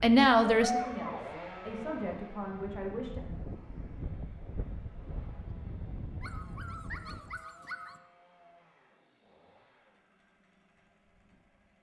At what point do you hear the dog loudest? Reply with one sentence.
The loudest moment of the dog is at 1 second.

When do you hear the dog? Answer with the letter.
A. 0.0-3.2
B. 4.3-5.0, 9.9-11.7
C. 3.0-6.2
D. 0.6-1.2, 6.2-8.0
D.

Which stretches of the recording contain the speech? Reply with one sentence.
The speech can be heard from 0.0 to 3.2 s.